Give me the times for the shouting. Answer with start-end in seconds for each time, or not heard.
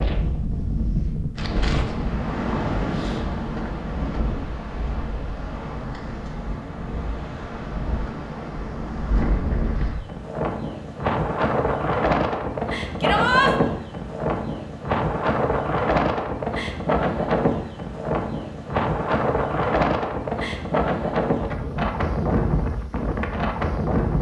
13.0-13.5.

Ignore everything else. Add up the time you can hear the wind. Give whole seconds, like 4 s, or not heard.
24 s.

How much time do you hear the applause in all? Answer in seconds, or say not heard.
not heard.